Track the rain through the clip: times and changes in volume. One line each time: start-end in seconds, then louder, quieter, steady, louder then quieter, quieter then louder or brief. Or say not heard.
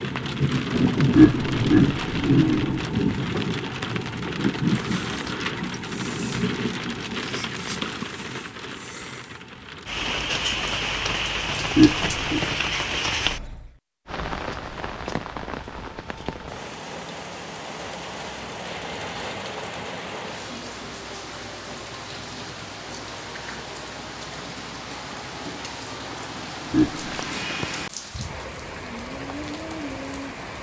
0.0-30.5 quieter.